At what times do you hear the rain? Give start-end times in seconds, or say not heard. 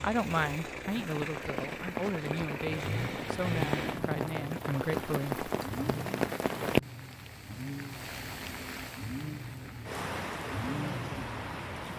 0.0-11.9.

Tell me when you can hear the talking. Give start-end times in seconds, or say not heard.
0.0-5.5.